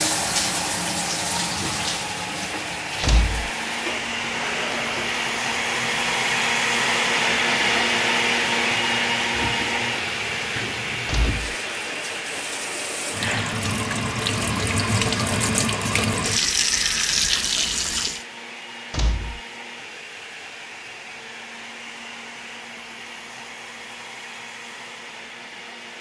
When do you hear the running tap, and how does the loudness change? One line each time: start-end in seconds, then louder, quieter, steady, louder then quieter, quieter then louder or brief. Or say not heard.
0.0-18.2 quieter then louder.